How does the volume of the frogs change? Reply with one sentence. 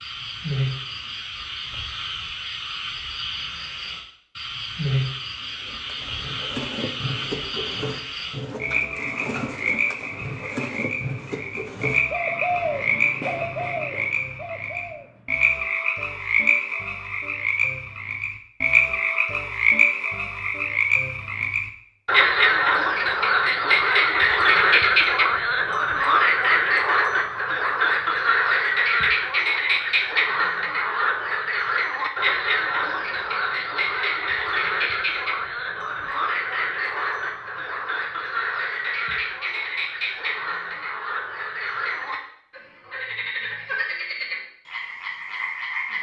The volume of the frogs goes up, then down.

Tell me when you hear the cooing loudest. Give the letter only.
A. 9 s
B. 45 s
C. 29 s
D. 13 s
D.